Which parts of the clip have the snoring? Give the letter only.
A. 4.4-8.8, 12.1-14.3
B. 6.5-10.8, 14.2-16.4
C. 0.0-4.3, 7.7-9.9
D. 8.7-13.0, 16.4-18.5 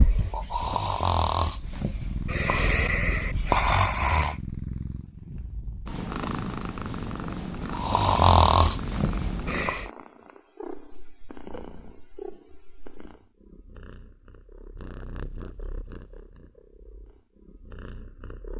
C.